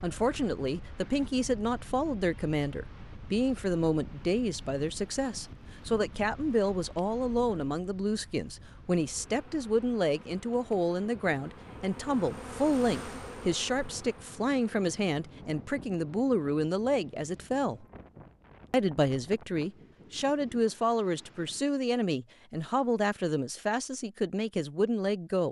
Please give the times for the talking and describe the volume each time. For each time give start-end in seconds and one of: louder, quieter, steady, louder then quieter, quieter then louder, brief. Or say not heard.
0.0-17.9 steady
18.7-25.4 steady.